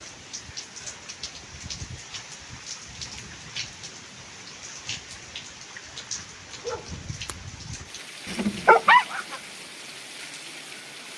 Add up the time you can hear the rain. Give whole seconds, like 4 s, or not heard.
11 s.